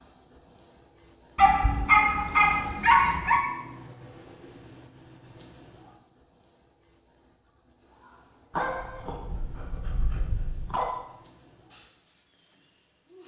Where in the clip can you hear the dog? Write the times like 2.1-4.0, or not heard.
1.4-3.4, 8.5-10.9.